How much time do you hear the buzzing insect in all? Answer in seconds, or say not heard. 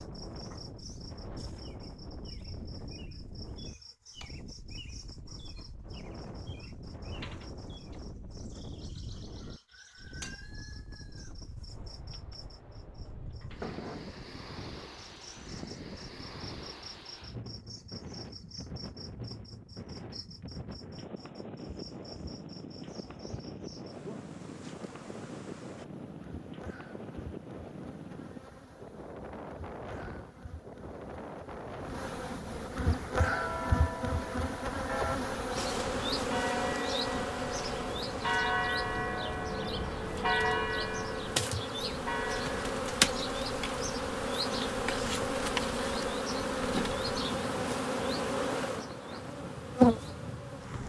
51 s.